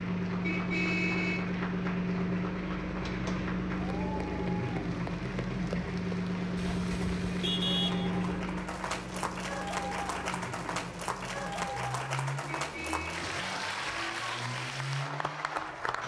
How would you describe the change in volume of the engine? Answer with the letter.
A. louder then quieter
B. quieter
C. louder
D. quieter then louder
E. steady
B.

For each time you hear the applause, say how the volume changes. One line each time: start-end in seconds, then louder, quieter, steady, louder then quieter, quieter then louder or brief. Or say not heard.
0.0-16.0 louder.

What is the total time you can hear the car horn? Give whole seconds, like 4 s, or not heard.
4 s.